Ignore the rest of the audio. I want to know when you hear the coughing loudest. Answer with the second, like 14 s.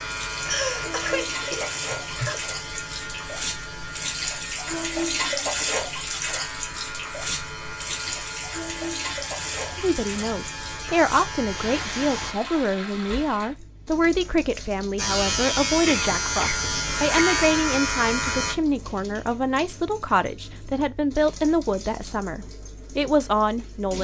1 s.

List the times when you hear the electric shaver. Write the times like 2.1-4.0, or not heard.
0.0-12.3, 14.9-18.6.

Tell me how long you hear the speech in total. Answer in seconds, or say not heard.
14 s.